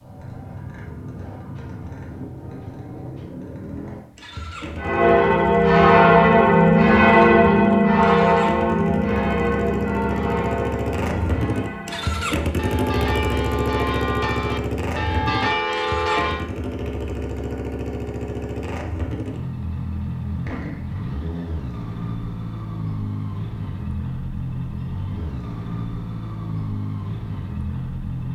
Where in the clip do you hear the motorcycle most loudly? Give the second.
13 s.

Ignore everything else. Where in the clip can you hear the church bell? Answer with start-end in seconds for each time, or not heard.
4.8-16.4.